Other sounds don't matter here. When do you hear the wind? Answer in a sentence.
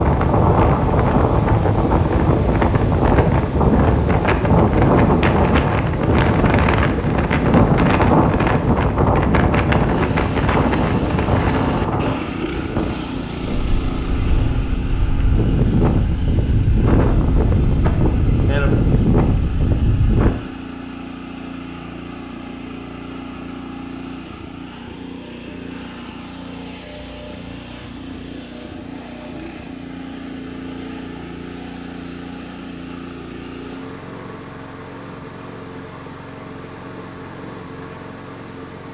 You can hear the wind from 0.0 to 20.4 s.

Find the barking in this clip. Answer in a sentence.
The barking can't be heard in this clip.